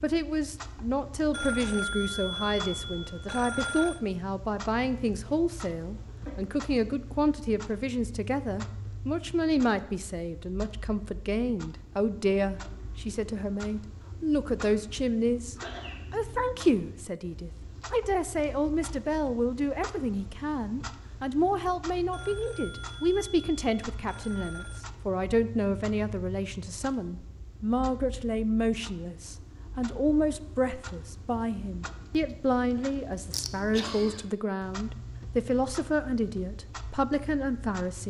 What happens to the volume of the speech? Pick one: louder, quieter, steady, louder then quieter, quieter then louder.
steady.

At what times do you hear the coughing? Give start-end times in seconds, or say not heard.
5.2-6.3, 15.6-16.0, 33.3-34.2.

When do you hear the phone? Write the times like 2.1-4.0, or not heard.
1.3-4.0, 22.1-24.9.